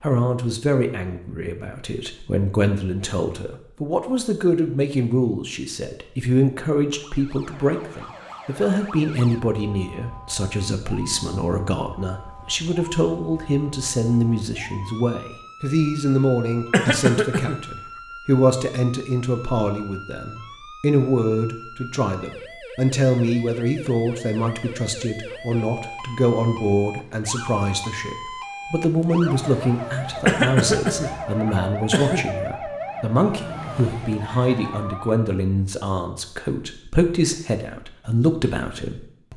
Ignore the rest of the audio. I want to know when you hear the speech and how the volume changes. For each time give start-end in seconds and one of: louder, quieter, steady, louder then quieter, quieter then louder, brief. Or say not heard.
0.0-39.3 steady.